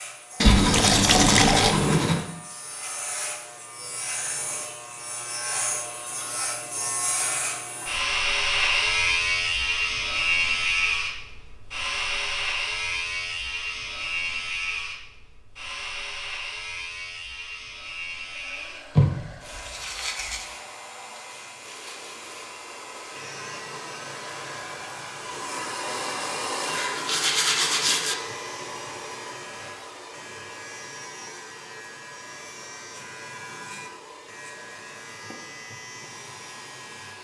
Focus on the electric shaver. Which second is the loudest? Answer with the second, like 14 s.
9 s.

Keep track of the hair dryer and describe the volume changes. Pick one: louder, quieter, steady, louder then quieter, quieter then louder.
louder then quieter.